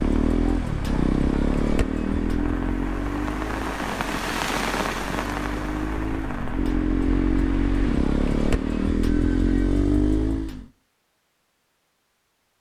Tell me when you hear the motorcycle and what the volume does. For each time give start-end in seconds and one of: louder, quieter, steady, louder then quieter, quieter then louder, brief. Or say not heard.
0.0-10.7 quieter then louder.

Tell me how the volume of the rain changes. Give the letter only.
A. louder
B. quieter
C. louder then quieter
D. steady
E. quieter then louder
C.